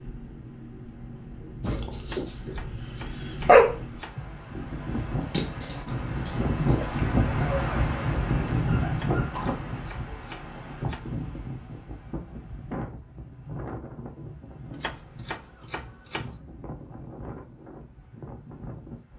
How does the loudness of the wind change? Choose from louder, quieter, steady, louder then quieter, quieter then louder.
louder then quieter.